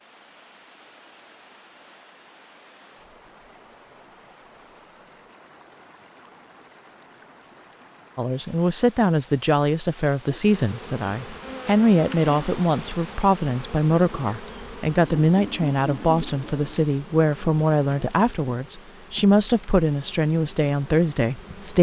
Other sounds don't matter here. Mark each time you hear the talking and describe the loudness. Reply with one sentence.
You can hear the talking from 8.2 to 21.7 s, at a steady volume.